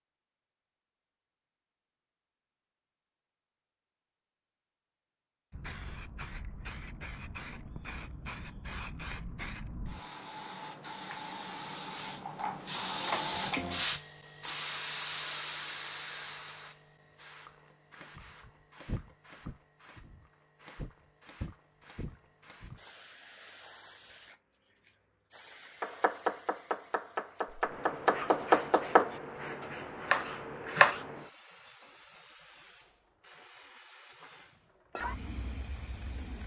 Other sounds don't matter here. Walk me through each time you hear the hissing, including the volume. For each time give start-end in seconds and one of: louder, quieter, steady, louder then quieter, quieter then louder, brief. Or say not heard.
5.5-36.4 louder then quieter.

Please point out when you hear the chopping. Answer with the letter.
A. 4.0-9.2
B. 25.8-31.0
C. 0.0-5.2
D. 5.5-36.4
B.